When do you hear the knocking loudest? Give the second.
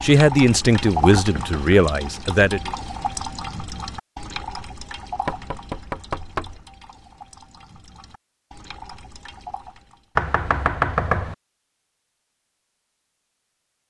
11 s.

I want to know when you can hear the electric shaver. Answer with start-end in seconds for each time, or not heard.
not heard.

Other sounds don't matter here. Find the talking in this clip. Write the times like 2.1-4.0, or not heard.
0.0-2.7.